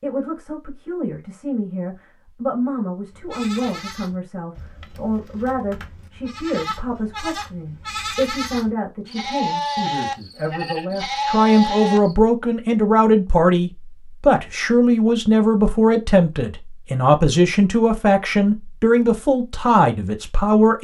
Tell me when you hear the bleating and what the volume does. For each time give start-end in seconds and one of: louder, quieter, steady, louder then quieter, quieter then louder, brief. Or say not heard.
3.1-12.2 louder.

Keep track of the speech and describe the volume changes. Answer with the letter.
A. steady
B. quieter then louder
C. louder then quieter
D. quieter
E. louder
E.